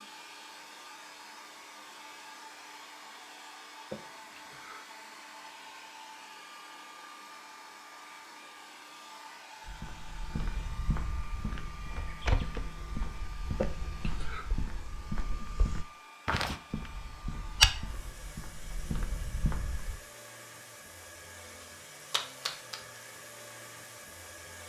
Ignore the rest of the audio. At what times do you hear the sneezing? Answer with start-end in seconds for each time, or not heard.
3.9-4.9, 13.6-14.4.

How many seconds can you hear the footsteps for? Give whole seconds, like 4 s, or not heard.
10 s.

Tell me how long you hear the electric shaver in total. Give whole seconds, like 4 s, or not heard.
not heard.